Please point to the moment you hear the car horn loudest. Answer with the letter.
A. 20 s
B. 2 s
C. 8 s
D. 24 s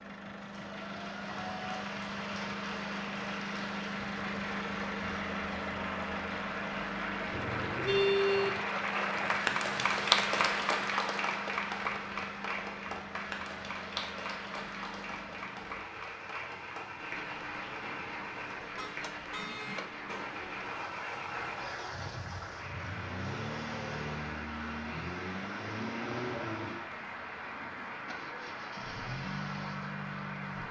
C.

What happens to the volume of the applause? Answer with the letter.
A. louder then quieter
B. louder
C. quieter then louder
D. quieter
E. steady
A.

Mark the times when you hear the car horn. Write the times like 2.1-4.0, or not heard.
7.3-8.6, 18.8-19.9.